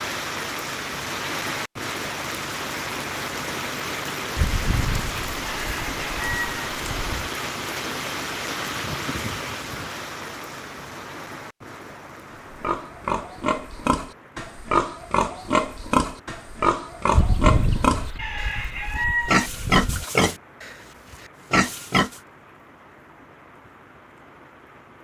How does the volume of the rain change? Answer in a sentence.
The loudness of the rain goes down.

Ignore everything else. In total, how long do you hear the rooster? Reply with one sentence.
You can hear the rooster for 6 seconds altogether.